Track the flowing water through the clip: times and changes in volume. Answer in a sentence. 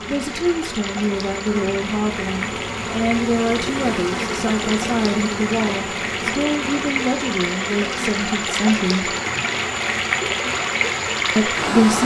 You can hear the flowing water from 0.0 to 12.0 s, getting louder.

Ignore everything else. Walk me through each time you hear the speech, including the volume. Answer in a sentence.
You can hear the speech from 0.1 to 9.2 s, at a steady volume; and briefly from 11.3 to 12.0 s.